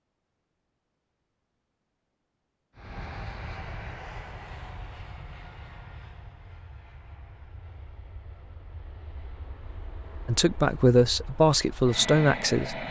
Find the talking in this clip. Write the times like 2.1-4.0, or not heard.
10.2-12.8.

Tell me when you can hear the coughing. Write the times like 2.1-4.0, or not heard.
not heard.